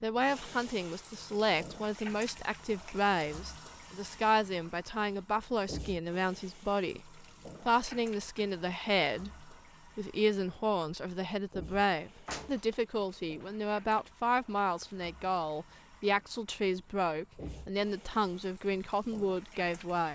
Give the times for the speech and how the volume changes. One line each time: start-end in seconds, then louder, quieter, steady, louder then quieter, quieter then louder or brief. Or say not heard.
0.0-20.1 steady.